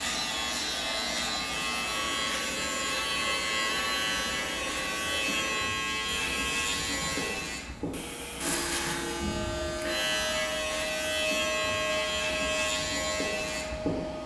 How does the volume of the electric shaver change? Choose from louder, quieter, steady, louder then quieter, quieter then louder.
steady.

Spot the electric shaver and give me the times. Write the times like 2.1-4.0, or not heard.
0.0-14.2.